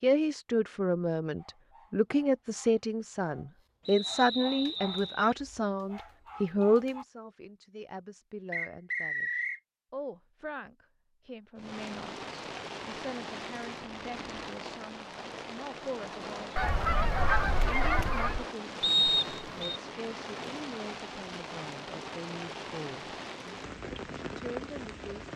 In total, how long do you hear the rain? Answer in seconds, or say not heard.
14 s.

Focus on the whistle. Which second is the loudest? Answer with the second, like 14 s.
19 s.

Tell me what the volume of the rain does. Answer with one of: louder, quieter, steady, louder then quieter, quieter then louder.
steady.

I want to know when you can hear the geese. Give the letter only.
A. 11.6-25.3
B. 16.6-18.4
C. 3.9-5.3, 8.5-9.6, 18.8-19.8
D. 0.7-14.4
B.